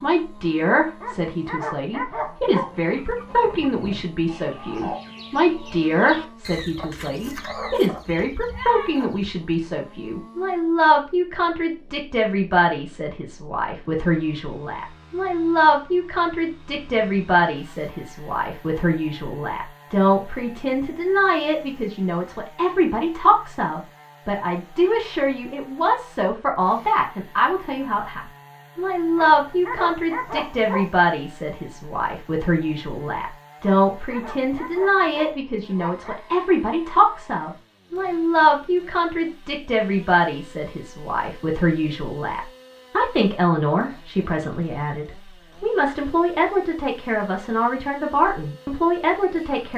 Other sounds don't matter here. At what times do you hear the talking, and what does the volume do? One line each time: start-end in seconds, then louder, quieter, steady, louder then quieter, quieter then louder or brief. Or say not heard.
0.0-49.7 steady.